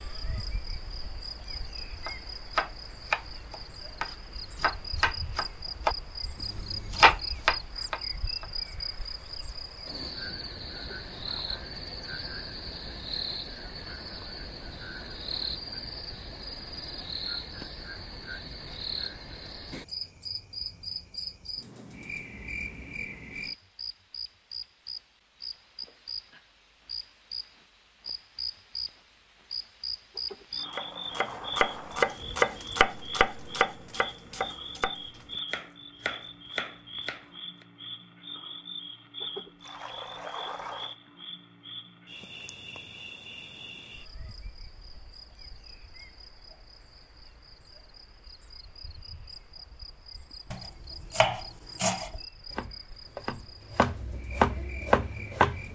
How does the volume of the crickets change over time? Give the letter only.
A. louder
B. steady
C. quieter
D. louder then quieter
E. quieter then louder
C.